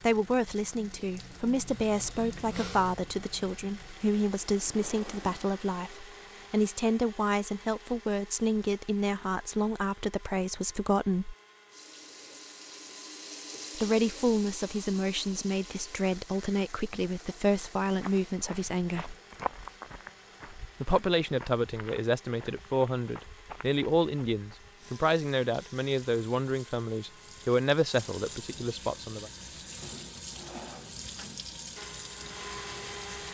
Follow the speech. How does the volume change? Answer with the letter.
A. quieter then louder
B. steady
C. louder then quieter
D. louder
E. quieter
B.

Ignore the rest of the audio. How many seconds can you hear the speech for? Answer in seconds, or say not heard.
25 s.